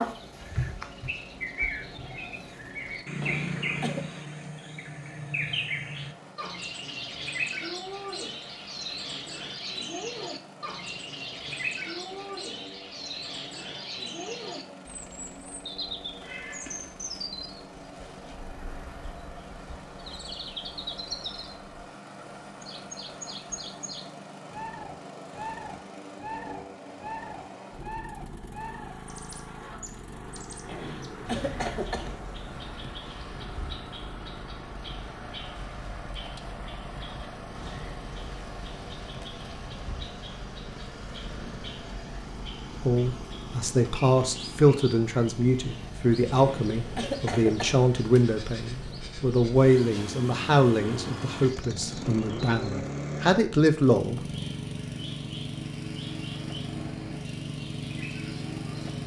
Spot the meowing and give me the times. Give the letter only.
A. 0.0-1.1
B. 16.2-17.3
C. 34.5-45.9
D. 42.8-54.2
B.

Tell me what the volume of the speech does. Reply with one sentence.
The volume of the speech stays about the same.